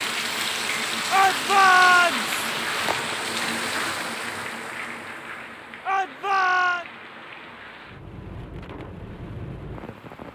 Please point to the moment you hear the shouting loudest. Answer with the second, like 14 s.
2 s.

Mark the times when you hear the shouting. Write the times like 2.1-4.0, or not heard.
1.1-2.4, 5.8-6.8.